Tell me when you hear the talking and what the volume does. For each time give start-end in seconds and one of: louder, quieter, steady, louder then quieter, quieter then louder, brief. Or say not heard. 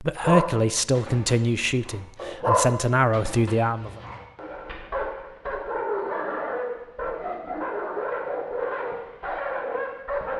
0.0-4.0 quieter then louder.